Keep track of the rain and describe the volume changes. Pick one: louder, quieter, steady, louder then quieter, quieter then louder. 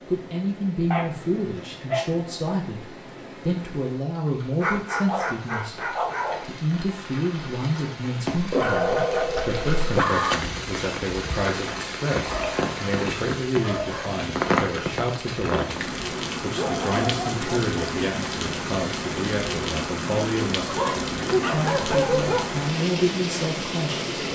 louder.